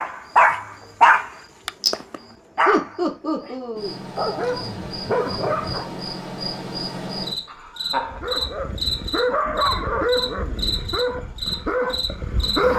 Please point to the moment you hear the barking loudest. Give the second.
1 s.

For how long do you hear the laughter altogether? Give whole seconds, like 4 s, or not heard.
2 s.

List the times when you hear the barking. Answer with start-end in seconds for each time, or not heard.
0.0-5.9, 8.0-12.7.